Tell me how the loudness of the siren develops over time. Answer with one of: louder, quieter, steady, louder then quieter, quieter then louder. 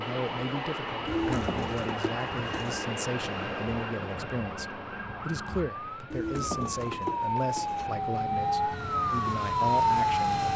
louder.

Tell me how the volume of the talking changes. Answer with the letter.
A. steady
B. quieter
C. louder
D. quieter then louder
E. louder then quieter
A.